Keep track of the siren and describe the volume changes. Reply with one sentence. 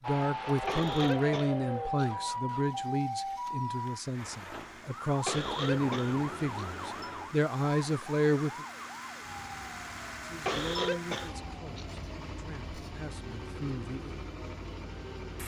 The loudness of the siren goes down.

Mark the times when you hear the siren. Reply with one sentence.
You can hear the siren from 0.0 to 15.4 s.